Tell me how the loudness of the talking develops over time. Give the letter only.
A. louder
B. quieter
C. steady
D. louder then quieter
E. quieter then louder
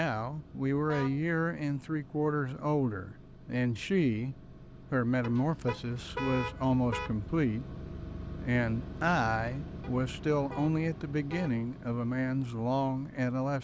C.